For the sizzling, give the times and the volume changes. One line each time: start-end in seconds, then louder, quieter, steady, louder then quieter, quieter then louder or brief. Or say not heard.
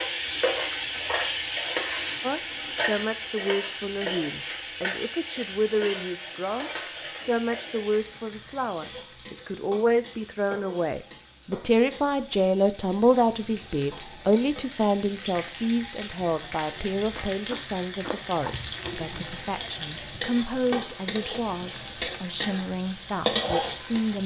0.0-24.2 quieter then louder.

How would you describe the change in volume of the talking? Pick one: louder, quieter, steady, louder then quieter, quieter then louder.
louder then quieter.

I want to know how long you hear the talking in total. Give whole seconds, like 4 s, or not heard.
22 s.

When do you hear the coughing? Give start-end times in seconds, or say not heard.
not heard.